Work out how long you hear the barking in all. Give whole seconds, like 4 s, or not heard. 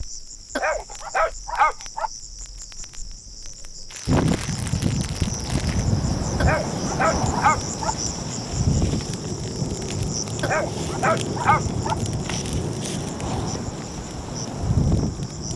5 s.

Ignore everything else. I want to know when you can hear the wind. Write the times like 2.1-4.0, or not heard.
4.0-15.5.